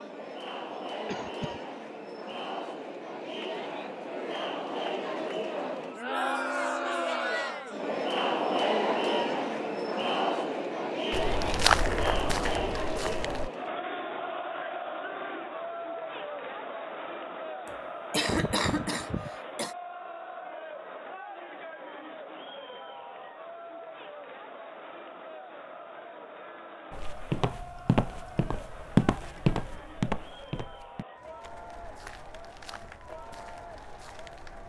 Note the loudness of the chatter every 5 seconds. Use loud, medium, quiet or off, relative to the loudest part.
medium, loud, loud, medium, quiet, quiet, quiet.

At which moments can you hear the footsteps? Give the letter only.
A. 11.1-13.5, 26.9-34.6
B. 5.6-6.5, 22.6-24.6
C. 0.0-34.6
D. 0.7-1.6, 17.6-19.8
A.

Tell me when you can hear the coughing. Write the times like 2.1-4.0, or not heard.
0.7-1.6, 17.6-19.8.